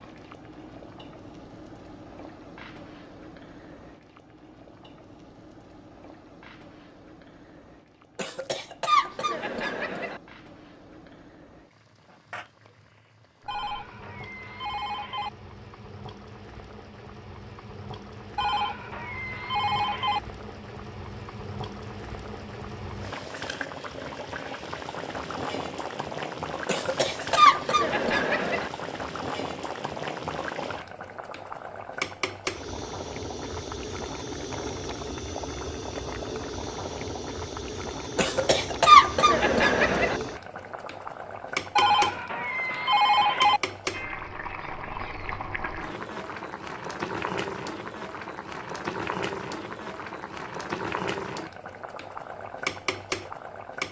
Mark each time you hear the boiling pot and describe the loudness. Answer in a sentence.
You can hear the boiling pot from 0.0 to 53.8 s, getting louder.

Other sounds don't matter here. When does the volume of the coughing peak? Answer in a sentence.
The volume of the coughing peaks at 39 seconds.